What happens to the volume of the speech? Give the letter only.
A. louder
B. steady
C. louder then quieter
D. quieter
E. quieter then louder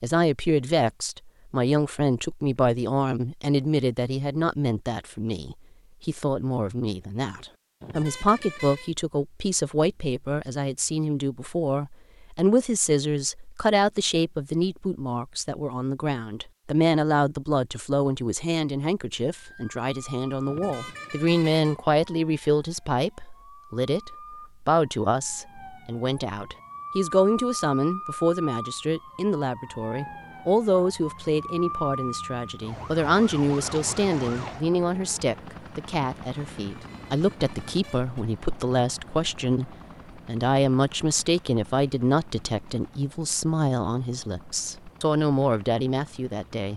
B.